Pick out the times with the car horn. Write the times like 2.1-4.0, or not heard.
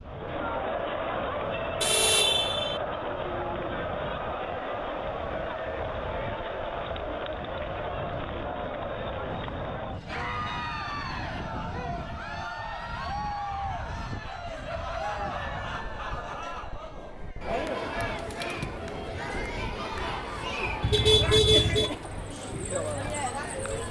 1.8-2.8, 20.8-21.9.